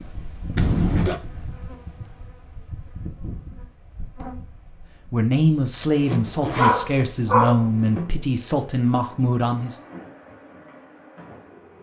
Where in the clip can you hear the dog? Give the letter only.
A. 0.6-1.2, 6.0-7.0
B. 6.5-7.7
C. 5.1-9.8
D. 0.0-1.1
B.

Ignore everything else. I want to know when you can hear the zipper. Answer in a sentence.
The zipper can be heard from 0.6 to 1.2 s and from 6.0 to 7.0 s.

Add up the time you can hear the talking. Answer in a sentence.
The talking can be heard for 5 seconds in total.